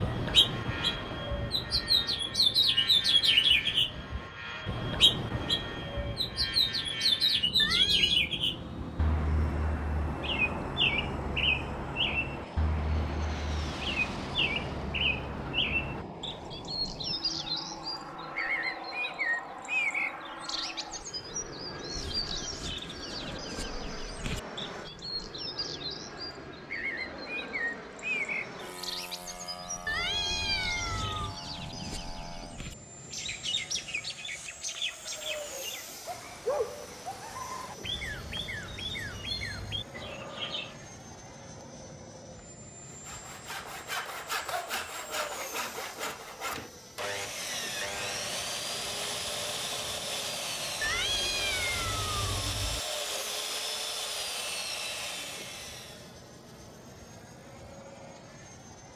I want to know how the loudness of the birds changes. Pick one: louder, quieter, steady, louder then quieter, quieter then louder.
quieter.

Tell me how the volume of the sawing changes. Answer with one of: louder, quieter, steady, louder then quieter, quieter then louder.
steady.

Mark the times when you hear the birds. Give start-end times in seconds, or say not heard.
0.0-40.8.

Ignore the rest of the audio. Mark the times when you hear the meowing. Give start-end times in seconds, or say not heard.
7.5-8.2, 29.9-31.4, 50.8-52.8.